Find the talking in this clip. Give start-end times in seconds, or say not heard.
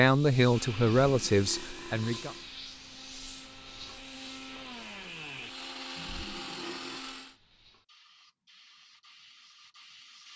0.0-2.4.